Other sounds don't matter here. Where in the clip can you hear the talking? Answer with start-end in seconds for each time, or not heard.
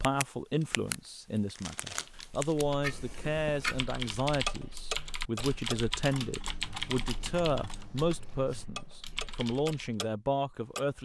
0.0-11.0.